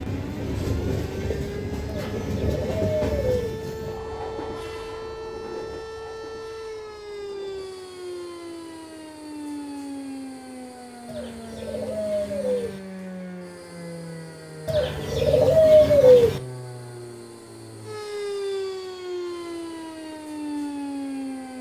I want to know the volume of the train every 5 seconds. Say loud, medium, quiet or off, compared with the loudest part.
loud, quiet, quiet, quiet, quiet.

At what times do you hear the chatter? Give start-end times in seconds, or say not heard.
not heard.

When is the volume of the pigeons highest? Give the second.
16 s.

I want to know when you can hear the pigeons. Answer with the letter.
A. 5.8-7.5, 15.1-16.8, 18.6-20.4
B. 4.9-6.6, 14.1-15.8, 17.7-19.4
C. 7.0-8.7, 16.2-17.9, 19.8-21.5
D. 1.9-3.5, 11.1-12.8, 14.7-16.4
D.